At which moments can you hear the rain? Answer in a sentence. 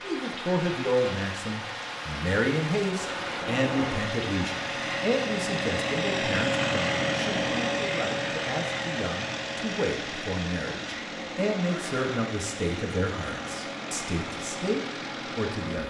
The rain can be heard from 0.0 to 15.8 s.